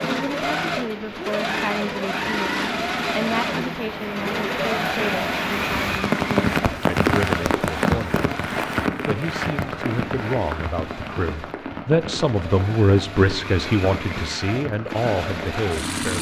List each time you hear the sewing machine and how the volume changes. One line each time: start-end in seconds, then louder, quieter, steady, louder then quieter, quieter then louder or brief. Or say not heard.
0.0-16.1 quieter then louder.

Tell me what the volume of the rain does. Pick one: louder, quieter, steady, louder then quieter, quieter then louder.
louder then quieter.